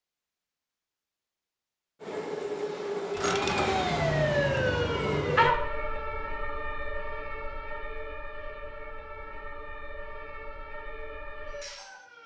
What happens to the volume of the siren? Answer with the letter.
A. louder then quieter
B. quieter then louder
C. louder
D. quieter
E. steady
D.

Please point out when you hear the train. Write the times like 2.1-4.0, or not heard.
2.0-5.5.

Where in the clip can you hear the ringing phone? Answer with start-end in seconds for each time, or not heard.
not heard.